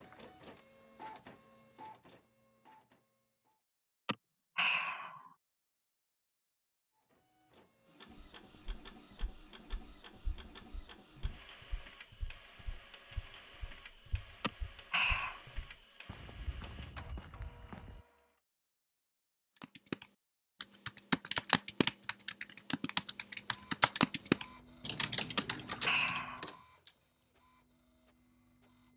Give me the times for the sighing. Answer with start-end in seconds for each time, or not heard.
4.0-5.3, 14.4-15.4, 25.4-26.6.